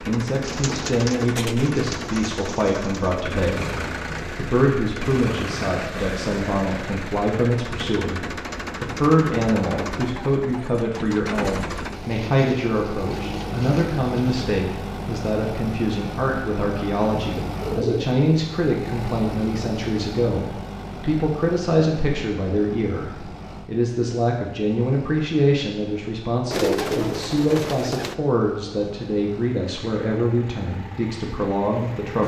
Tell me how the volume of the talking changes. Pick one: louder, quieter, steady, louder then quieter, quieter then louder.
steady.